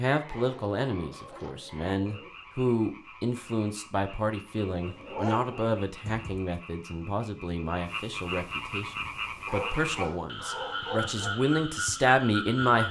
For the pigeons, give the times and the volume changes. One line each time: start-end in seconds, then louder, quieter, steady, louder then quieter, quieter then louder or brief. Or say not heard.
not heard.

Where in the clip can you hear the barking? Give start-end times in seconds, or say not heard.
0.2-2.3, 4.7-6.4, 9.4-11.3.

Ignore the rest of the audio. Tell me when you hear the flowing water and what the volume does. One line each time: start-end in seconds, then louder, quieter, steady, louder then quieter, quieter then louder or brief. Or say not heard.
not heard.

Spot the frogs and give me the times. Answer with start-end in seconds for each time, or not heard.
0.1-12.8.